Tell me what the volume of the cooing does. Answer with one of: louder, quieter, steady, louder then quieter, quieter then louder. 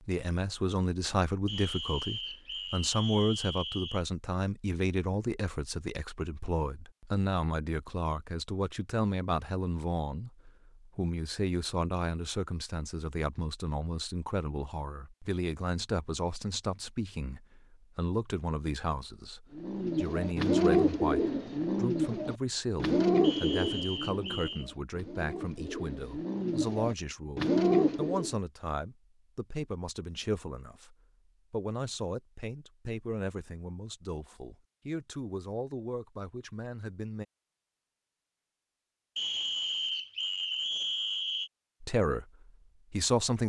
quieter then louder.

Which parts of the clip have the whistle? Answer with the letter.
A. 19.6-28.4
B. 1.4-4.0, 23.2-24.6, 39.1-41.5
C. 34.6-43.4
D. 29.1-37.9
B.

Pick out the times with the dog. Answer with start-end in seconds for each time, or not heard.
not heard.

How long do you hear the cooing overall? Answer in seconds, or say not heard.
9 s.